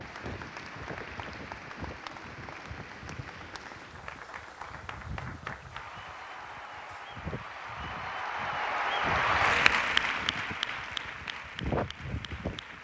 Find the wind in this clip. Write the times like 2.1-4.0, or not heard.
0.0-12.7.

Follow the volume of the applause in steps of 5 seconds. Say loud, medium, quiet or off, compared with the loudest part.
quiet, loud, medium.